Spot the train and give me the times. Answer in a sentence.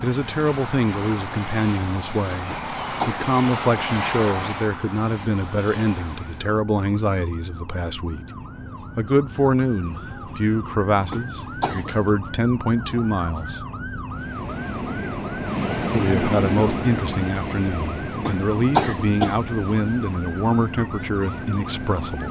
The train can be heard from 0.0 to 6.5 s and from 14.1 to 22.2 s.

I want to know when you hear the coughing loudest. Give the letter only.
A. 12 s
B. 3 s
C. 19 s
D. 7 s
C.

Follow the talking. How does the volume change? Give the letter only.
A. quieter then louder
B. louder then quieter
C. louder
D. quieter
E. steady
E.